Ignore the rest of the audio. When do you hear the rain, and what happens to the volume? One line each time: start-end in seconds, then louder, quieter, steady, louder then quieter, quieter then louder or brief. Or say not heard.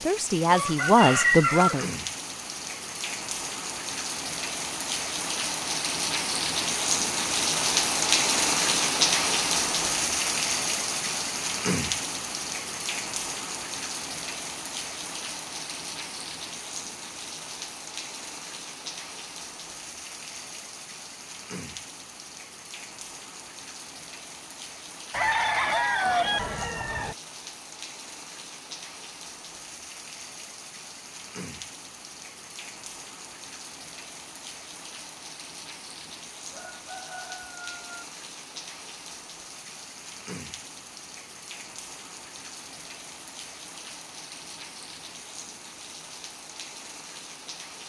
0.0-47.8 quieter.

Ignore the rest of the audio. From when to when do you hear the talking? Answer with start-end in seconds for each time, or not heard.
0.0-1.9.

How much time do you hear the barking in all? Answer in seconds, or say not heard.
not heard.